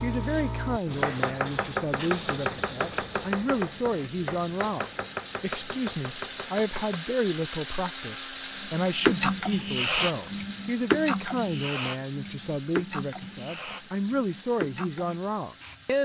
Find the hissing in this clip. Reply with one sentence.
The hissing can be heard from 0.0 to 3.5 s and from 8.6 to 15.8 s.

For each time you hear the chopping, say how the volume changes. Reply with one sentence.
The chopping can be heard from 0.8 to 7.0 s, getting quieter.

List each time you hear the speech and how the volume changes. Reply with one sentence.
The speech can be heard from 0.0 to 15.9 s, at a steady volume.